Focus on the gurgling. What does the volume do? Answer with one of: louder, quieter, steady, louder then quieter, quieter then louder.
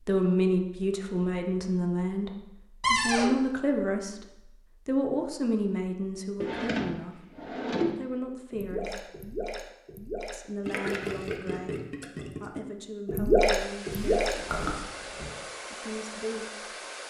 louder.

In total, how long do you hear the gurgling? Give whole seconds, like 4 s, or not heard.
6 s.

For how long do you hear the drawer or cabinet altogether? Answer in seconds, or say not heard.
3 s.